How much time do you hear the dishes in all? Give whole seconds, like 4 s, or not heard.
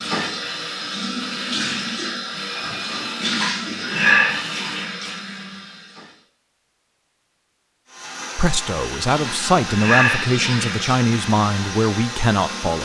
not heard.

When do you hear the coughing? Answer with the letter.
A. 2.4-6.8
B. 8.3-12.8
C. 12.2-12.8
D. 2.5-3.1
D.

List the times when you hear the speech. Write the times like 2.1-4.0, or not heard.
8.3-12.8.